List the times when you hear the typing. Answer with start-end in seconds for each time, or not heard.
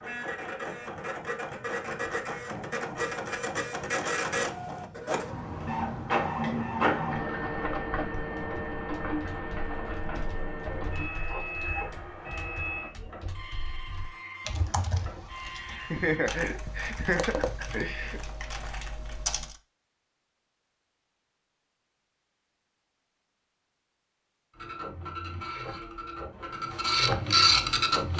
8.3-19.6.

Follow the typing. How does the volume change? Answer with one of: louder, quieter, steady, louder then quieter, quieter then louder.
louder.